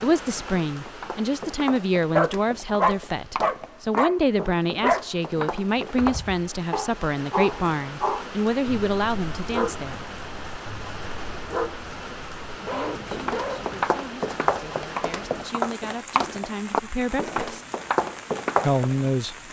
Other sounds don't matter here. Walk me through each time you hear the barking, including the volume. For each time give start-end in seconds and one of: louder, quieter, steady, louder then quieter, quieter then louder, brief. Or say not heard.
2.1-13.8 quieter.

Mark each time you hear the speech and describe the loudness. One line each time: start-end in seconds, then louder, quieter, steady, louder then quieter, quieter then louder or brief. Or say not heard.
0.0-10.1 steady
12.8-17.6 louder
18.6-19.4 brief.